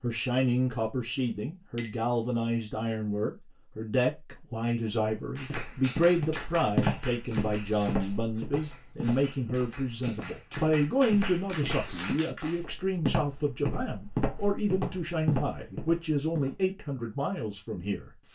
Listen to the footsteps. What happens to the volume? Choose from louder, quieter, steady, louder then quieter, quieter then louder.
quieter then louder.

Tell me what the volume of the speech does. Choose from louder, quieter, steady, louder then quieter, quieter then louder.
steady.